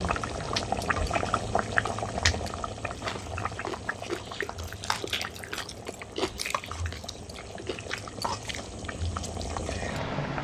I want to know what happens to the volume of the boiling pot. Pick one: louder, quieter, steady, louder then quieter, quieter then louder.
quieter then louder.